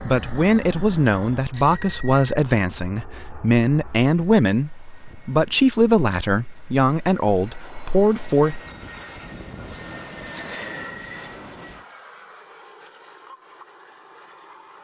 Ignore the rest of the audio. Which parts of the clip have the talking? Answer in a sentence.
You can hear the talking from 0.0 to 8.6 s.